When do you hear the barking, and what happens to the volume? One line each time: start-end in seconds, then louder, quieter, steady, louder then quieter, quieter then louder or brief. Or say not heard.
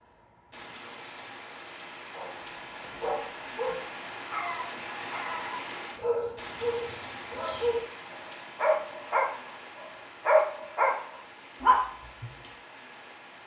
2.1-12.5 louder.